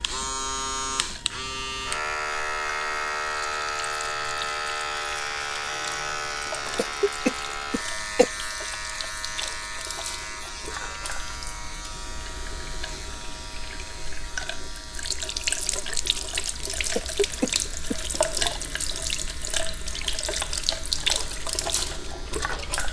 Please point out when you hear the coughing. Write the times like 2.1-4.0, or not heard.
6.8-8.2, 16.9-18.0.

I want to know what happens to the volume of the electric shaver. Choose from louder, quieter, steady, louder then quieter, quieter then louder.
quieter.